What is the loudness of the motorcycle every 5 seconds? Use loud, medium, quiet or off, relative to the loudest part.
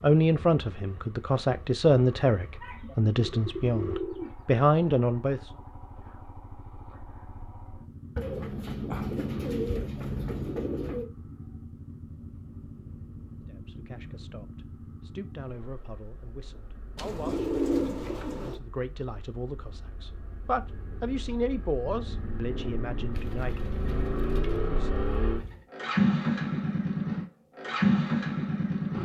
quiet, quiet, quiet, quiet, medium, loud.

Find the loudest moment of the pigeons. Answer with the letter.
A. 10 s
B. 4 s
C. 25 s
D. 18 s
D.